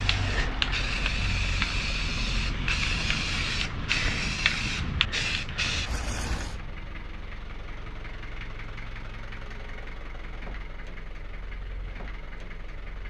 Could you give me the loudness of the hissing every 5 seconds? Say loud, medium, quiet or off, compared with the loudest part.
loud, loud, off.